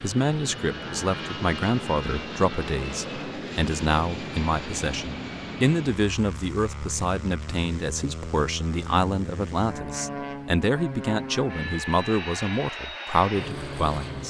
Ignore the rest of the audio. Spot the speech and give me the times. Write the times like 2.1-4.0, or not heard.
0.0-14.2.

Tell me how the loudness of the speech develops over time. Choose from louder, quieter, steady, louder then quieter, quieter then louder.
steady.